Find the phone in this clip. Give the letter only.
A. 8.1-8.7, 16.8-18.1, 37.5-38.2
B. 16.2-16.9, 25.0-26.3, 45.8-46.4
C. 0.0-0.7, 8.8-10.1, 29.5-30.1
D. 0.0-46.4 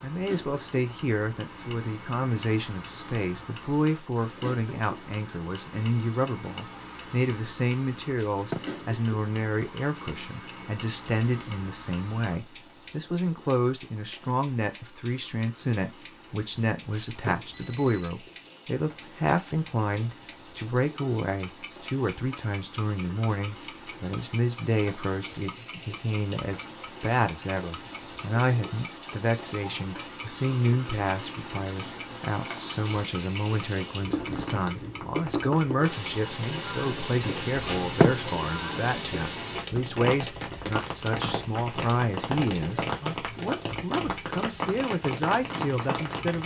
A.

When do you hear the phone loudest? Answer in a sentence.
The loudest moment of the phone is at 38 seconds.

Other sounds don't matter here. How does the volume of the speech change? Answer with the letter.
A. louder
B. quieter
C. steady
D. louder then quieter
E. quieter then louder
C.